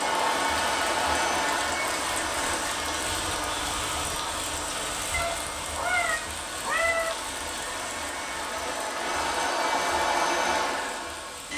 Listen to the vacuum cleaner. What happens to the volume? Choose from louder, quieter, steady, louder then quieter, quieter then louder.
quieter then louder.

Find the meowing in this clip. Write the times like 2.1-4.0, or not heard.
5.1-7.2.